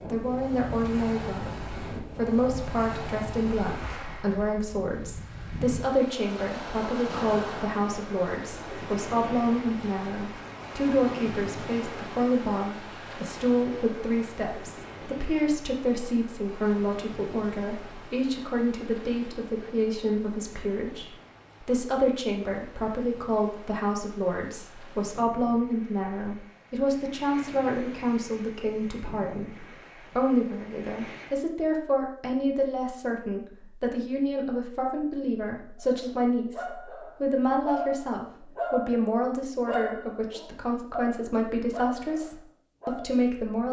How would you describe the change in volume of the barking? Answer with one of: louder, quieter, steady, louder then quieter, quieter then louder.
louder then quieter.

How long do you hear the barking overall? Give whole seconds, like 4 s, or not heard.
7 s.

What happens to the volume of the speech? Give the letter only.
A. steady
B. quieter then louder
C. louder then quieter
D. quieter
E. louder
A.